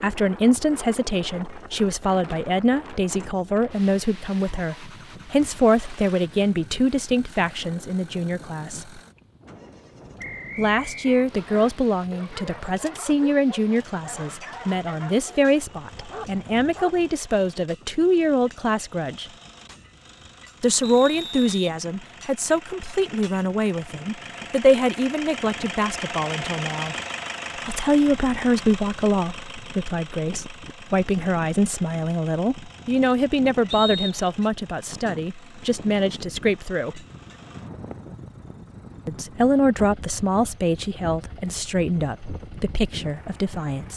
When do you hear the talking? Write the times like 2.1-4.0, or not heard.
0.0-9.0, 10.6-19.3, 20.6-26.9, 27.6-37.0, 39.0-43.9.